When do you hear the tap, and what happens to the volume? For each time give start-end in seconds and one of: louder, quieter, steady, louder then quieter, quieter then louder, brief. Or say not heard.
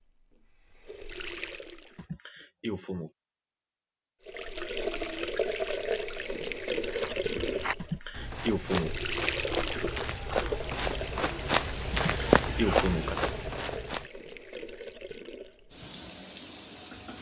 0.1-2.0 brief
4.2-17.1 quieter.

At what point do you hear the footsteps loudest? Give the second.
12 s.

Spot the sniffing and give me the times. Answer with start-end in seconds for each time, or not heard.
1.9-3.1, 7.8-8.9, 11.9-13.2.